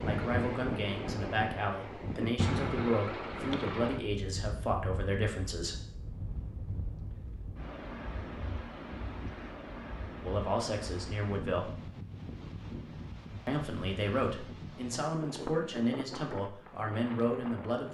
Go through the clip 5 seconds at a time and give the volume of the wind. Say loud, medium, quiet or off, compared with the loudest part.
loud, medium, medium, medium.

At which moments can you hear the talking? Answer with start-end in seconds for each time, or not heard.
0.0-5.8, 10.2-11.7, 13.4-17.8.